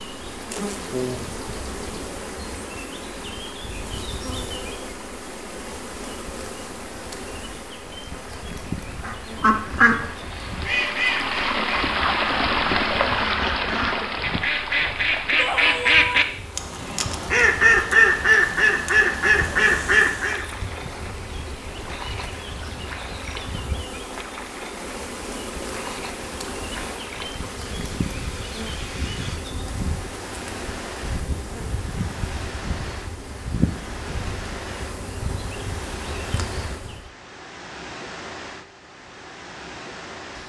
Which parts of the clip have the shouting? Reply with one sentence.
You can hear the shouting from 15.3 to 16.2 s.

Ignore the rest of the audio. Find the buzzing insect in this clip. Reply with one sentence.
You can hear the buzzing insect from 0.0 to 37.1 s.